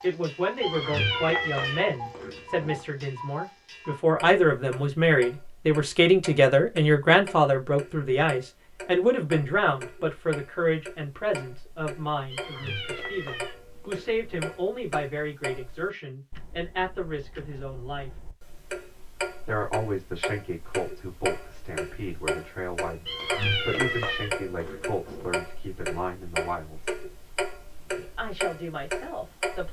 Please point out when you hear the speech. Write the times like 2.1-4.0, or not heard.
0.0-18.1, 19.4-26.9, 27.9-29.6.